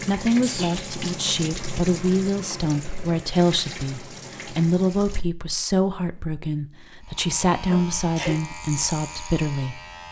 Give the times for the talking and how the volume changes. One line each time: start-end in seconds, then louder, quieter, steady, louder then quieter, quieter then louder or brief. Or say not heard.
0.0-9.8 steady.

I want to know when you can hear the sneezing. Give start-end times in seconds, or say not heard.
0.4-0.8, 7.7-8.3.